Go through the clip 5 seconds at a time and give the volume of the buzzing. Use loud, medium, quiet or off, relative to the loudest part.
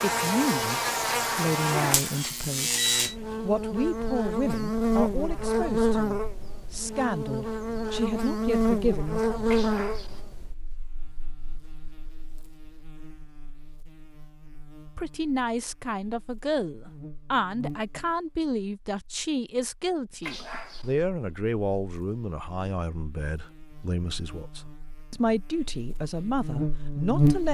loud, loud, quiet, quiet, quiet, loud.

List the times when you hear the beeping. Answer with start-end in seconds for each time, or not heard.
1.9-3.1, 9.4-10.2, 20.2-20.9.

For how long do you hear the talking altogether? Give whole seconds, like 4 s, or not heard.
21 s.